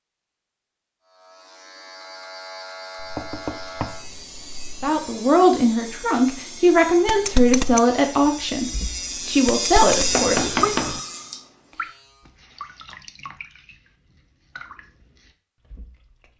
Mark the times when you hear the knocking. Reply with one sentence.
The knocking can be heard from 3.0 to 4.8 s and from 10.1 to 11.0 s.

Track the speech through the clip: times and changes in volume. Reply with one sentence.
The speech can be heard from 4.8 to 10.8 s, getting quieter then louder.